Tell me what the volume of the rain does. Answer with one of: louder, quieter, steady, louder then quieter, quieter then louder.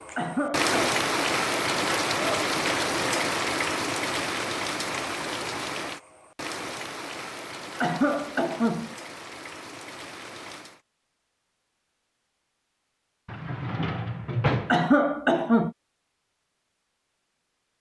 quieter.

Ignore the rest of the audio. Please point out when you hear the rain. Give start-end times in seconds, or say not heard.
0.0-10.8.